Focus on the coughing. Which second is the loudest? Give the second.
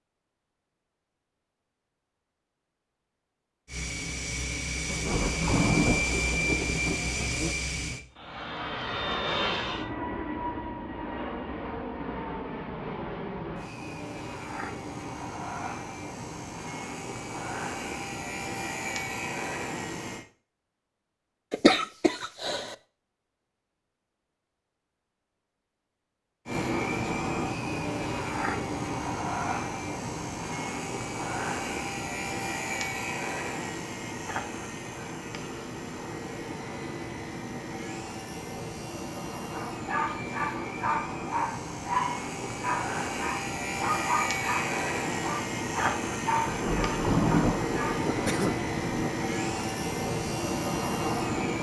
22 s.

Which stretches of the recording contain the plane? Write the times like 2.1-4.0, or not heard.
3.6-20.2, 26.4-51.5.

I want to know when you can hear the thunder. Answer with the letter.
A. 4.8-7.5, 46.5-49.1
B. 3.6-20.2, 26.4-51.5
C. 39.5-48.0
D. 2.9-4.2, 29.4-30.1
A.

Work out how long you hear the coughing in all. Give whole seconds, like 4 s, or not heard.
2 s.